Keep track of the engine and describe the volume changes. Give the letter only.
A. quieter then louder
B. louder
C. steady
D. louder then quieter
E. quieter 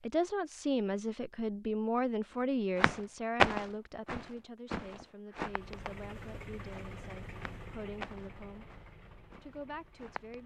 E.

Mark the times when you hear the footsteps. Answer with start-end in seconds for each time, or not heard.
2.8-6.0, 6.7-10.4.